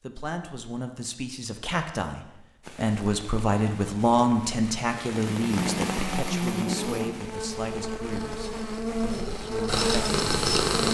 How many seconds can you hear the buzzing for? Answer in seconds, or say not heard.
6 s.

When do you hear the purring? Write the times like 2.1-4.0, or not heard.
8.1-10.8.